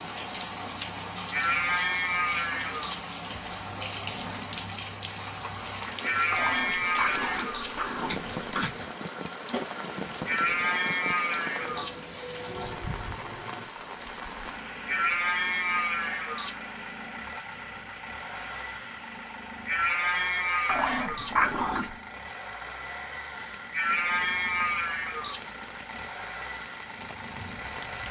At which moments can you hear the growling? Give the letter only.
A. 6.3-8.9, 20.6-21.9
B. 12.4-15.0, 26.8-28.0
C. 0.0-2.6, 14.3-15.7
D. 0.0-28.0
A.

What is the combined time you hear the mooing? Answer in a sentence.
The mooing can be heard for 10 seconds in total.